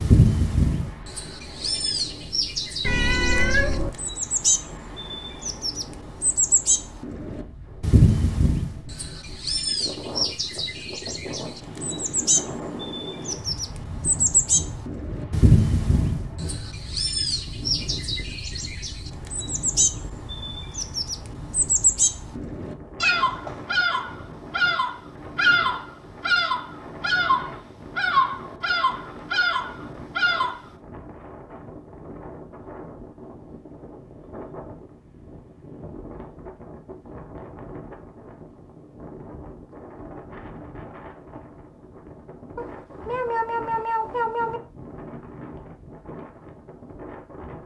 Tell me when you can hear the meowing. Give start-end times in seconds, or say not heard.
2.8-3.9, 23.0-23.6, 42.5-44.6.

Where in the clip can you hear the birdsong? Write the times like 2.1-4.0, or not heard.
0.0-30.6.